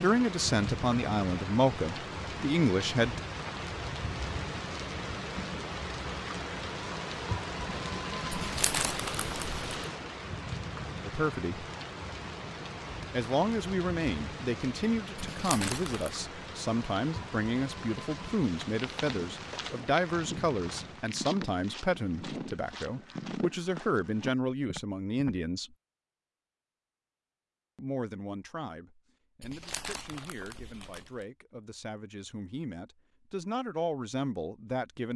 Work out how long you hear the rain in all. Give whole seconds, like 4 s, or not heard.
21 s.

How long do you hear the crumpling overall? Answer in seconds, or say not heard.
4 s.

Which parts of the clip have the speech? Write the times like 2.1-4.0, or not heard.
0.0-3.1, 11.1-11.7, 13.1-25.7, 27.8-35.1.